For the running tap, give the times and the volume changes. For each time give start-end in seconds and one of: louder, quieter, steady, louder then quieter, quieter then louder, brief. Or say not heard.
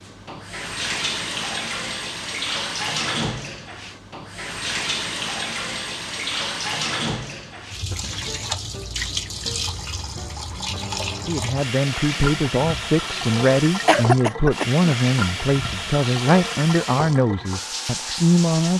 0.0-18.7 steady.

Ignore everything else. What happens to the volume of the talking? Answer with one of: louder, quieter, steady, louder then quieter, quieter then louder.
steady.